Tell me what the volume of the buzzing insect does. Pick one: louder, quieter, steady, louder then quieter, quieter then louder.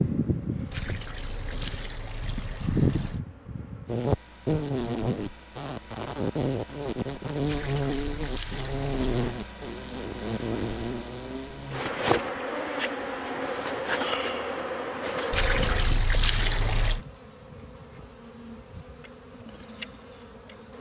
quieter.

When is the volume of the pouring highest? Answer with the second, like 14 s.
16 s.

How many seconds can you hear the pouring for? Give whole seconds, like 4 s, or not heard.
6 s.